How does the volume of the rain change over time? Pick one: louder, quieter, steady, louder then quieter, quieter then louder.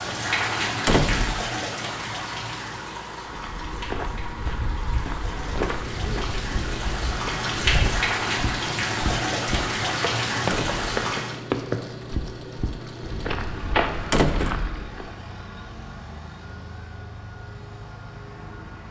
quieter then louder.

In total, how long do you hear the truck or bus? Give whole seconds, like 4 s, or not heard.
17 s.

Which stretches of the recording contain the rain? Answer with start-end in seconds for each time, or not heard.
0.0-11.3.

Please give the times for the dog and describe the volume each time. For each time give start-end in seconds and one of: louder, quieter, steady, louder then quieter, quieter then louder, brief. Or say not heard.
not heard.